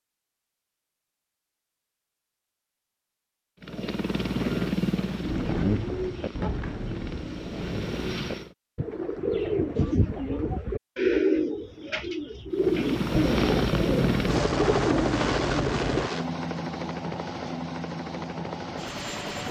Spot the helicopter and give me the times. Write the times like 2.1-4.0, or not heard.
3.6-8.6, 12.5-19.4.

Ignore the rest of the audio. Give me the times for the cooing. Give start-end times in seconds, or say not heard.
5.2-16.1.